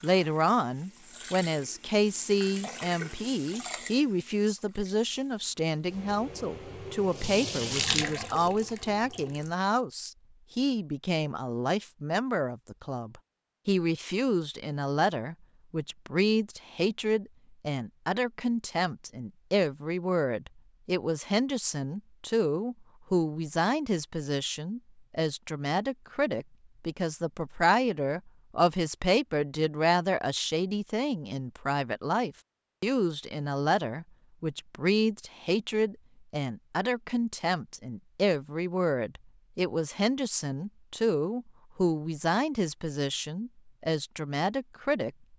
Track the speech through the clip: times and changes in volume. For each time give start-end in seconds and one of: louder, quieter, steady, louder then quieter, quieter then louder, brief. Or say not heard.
0.0-45.1 steady.